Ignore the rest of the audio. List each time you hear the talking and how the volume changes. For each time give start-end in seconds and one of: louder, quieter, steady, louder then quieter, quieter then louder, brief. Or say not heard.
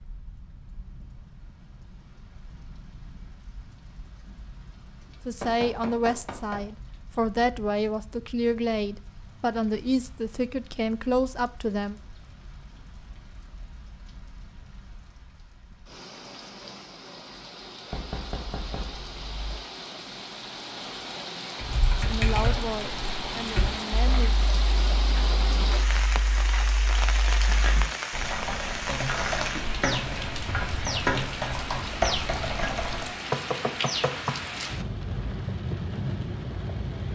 5.2-11.9 steady
21.9-24.4 brief.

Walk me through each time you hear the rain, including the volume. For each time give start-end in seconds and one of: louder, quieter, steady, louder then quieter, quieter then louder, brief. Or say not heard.
0.0-37.1 louder.